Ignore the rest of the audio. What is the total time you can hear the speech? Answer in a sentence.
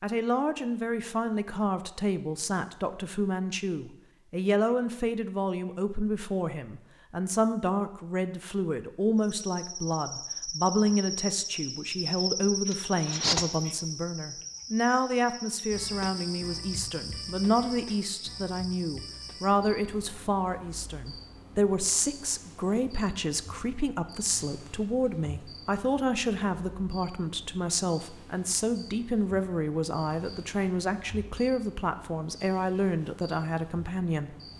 You can hear the speech for 34 seconds altogether.